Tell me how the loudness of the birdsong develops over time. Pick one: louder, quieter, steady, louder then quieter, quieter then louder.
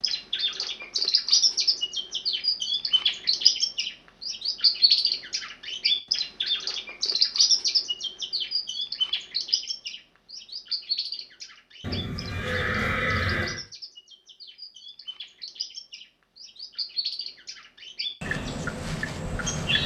quieter then louder.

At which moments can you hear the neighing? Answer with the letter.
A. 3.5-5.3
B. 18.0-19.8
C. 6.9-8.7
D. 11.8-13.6
D.